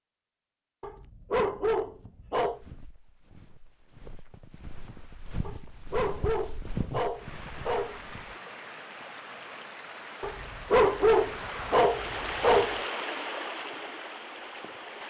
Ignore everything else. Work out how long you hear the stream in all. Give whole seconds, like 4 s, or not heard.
8 s.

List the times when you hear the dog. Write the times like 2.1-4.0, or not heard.
0.8-2.6, 5.5-8.4, 10.2-12.8.